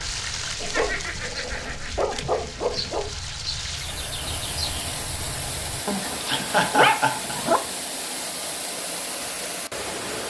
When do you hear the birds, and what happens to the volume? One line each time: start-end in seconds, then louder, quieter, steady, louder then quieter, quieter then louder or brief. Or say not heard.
0.0-5.8 louder.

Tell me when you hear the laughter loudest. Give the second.
7 s.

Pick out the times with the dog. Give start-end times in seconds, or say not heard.
0.6-3.1, 5.8-7.6.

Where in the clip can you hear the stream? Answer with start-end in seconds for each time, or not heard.
0.0-10.2.